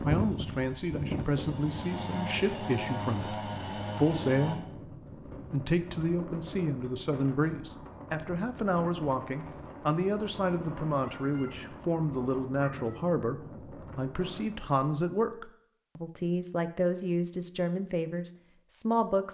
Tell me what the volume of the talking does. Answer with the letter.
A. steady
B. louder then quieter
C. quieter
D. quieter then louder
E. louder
A.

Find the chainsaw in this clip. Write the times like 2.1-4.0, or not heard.
0.1-4.5.